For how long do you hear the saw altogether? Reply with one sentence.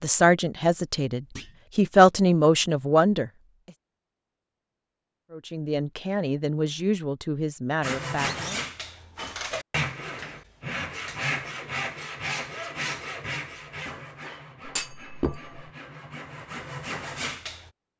You can hear the saw for 10 seconds altogether.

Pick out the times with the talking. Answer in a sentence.
You can hear the talking from 0.0 to 3.3 s and from 5.3 to 8.6 s.